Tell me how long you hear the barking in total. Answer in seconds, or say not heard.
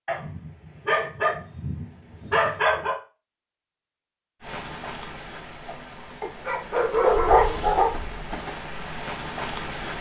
5 s.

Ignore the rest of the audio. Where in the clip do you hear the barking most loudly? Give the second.
7 s.